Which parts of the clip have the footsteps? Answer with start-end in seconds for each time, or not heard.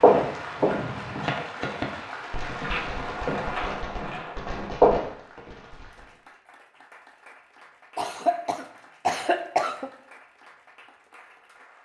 0.0-5.0.